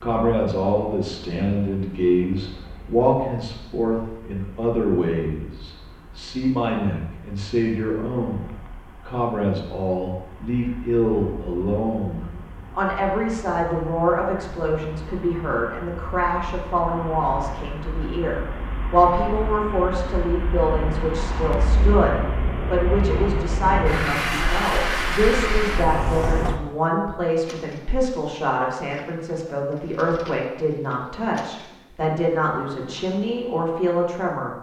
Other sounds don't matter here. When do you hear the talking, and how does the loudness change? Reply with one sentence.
You can hear the talking from 0.0 to 34.5 s, at a steady volume.